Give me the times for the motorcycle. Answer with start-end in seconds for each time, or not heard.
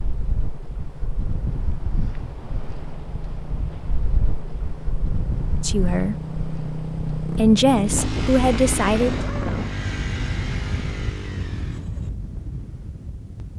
0.0-12.1.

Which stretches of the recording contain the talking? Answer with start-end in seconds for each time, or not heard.
5.6-6.2, 7.3-9.2.